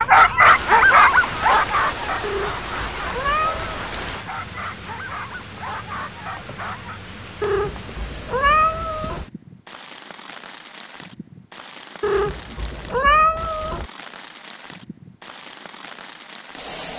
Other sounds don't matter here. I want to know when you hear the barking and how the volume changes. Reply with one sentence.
The barking can be heard from 0.0 to 7.0 s, getting quieter.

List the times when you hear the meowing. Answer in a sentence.
You can hear the meowing from 2.2 to 3.8 s, from 7.4 to 9.2 s and from 12.0 to 13.8 s.